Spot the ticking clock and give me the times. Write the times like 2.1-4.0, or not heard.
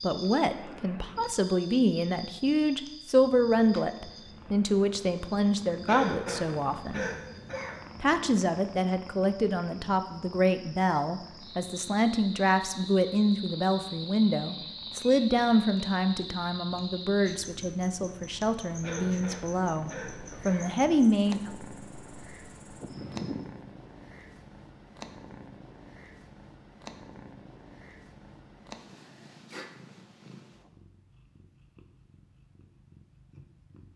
not heard.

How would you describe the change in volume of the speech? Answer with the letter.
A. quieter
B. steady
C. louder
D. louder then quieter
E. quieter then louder
B.